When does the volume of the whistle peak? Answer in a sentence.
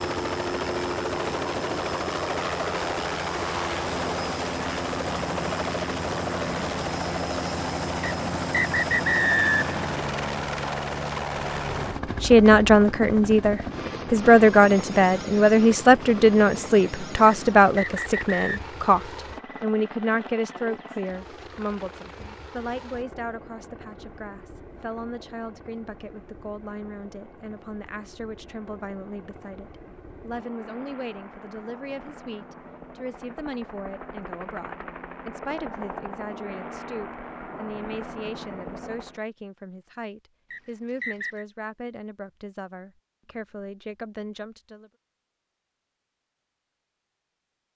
The volume of the whistle peaks at 9 seconds.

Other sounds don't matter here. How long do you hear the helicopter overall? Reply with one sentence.
You can hear the helicopter for 39 seconds altogether.